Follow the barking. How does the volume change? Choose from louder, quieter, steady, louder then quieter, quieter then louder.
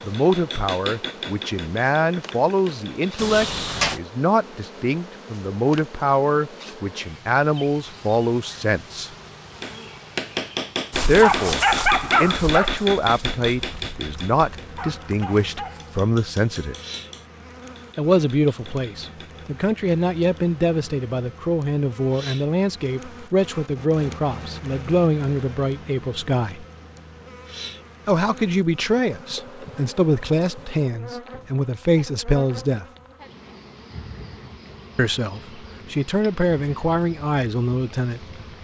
quieter then louder.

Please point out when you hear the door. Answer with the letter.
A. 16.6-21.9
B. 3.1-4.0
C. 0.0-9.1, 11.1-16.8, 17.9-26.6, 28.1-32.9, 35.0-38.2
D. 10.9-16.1
B.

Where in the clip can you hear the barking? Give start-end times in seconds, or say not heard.
10.9-16.1.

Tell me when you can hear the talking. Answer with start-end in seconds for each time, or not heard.
0.0-9.1, 11.1-16.8, 17.9-26.6, 28.1-32.9, 35.0-38.2.